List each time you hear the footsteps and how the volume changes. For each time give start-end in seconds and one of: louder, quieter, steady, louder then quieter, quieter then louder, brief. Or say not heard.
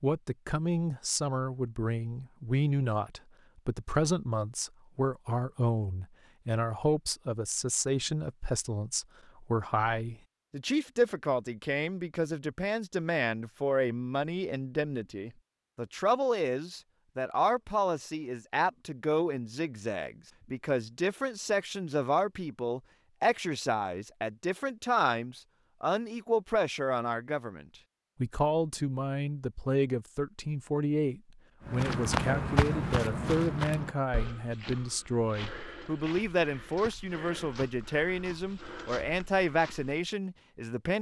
31.6-40.0 quieter.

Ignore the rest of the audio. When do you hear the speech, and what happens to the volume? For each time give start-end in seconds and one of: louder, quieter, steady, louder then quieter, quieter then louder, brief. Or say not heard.
0.0-40.9 steady.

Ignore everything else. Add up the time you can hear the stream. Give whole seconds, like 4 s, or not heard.
not heard.